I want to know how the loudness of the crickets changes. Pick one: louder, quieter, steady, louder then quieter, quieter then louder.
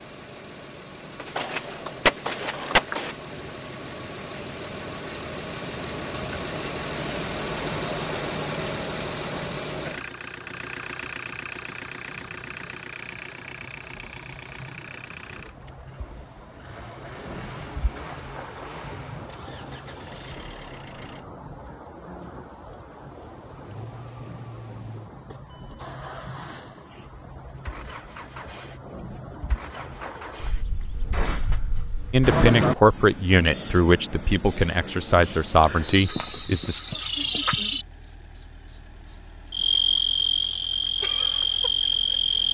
louder.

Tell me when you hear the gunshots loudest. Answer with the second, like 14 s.
2 s.